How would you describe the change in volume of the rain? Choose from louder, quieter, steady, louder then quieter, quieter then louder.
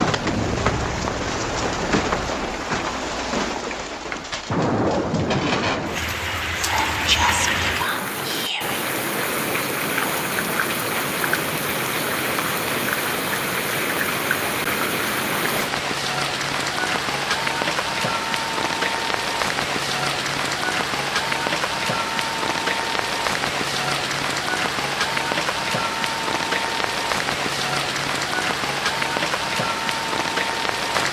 steady.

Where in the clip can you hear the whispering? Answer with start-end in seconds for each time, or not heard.
6.5-8.8.